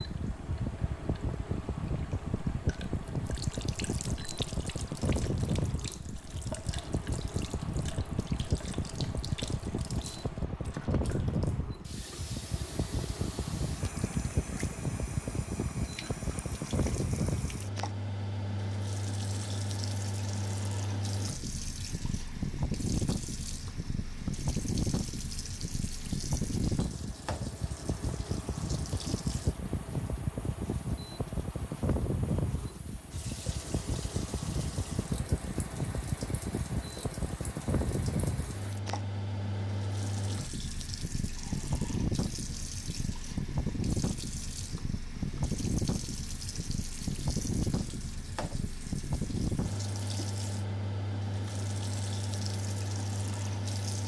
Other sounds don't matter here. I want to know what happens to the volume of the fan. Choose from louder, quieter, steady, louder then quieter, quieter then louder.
steady.